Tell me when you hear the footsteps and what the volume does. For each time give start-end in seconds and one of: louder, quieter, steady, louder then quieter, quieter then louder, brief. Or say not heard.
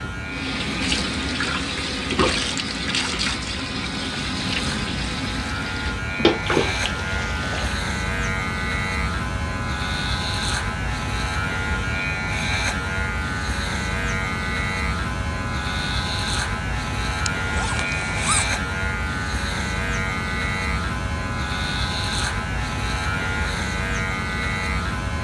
not heard.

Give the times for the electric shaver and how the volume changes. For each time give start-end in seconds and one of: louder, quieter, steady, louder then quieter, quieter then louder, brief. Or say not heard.
0.0-25.1 louder.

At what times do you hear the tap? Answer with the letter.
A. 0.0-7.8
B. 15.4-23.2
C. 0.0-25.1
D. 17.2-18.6
A.